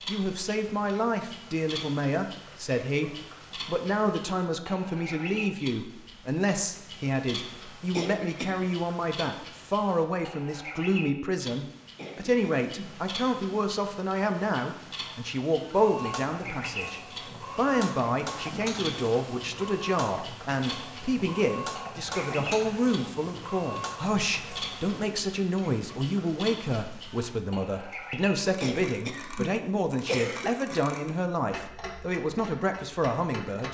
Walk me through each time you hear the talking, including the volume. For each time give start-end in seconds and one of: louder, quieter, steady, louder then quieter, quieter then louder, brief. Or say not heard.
0.1-33.7 steady.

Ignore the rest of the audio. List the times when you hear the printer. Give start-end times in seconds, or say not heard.
15.8-25.1.